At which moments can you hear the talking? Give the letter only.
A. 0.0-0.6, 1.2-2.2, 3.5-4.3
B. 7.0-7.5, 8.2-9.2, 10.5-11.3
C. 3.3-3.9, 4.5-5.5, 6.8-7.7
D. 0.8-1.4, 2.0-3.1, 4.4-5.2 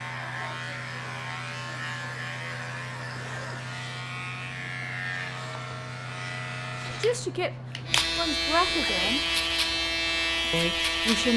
B.